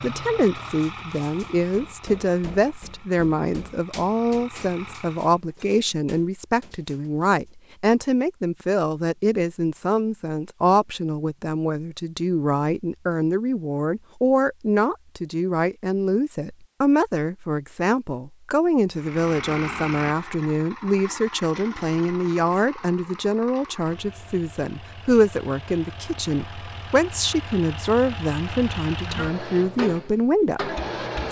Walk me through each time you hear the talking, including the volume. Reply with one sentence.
You can hear the talking from 0.0 to 31.2 s, at a steady volume.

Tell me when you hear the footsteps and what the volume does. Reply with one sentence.
The footsteps can't be heard in this clip.